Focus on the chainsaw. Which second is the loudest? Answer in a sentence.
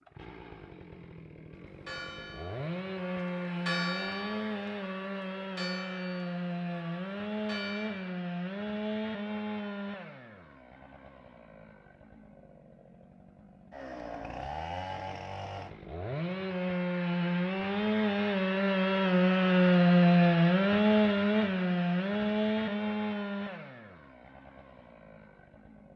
The loudest moment of the chainsaw is at 20 seconds.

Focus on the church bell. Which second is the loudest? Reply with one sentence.
The volume of the church bell peaks at 4 seconds.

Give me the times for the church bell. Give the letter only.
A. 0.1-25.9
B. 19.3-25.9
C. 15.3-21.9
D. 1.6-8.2
D.